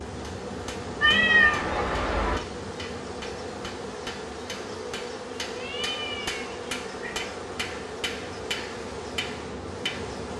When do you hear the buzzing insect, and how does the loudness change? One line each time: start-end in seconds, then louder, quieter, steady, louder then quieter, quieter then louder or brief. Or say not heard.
0.0-10.3 steady.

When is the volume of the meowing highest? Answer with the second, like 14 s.
1 s.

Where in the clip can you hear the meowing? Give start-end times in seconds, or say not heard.
1.0-2.4, 5.5-7.3.